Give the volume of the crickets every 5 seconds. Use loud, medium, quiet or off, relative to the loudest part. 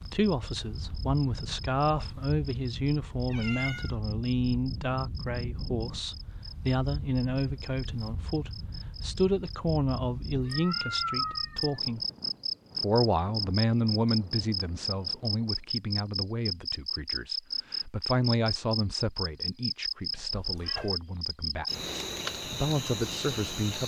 quiet, quiet, loud, loud, loud.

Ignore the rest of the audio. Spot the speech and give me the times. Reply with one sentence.
The speech can be heard from 0.0 to 12.0 s and from 12.8 to 23.8 s.